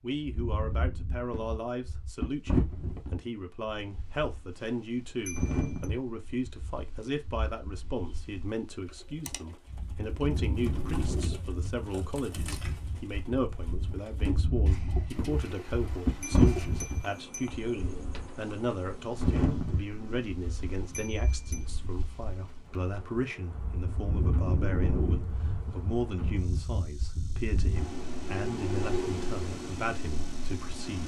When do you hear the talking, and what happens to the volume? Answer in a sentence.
You can hear the talking from 0.0 to 31.0 s, at a steady volume.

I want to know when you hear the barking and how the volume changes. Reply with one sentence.
The barking can't be heard in this clip.